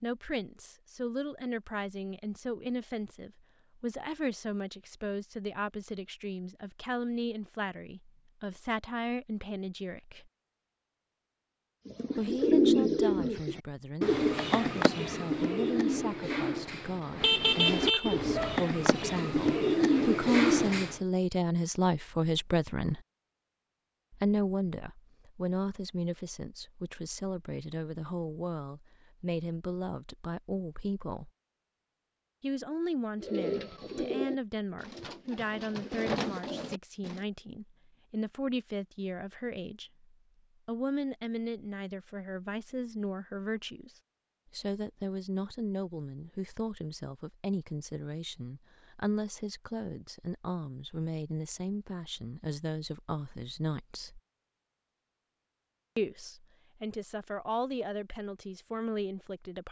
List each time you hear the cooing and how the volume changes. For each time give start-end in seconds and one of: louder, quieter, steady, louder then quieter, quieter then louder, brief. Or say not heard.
11.8-21.0 quieter then louder
33.2-37.2 quieter then louder.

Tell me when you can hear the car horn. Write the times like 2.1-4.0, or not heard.
17.2-18.6.